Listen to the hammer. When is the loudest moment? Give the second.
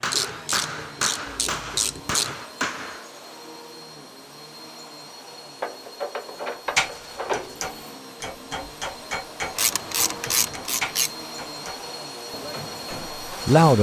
7 s.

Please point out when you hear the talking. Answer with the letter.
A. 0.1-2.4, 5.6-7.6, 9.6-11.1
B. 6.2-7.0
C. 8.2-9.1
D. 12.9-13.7
D.